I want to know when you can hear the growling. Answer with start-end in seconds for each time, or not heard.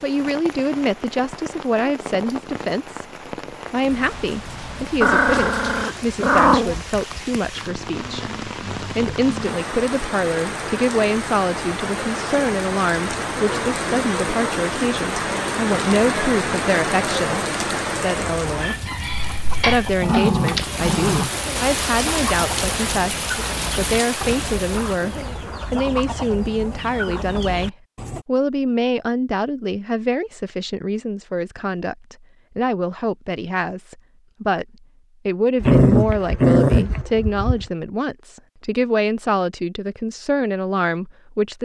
5.0-6.8, 19.6-21.3, 35.6-37.6.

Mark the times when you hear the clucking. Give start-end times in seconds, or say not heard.
18.2-28.2.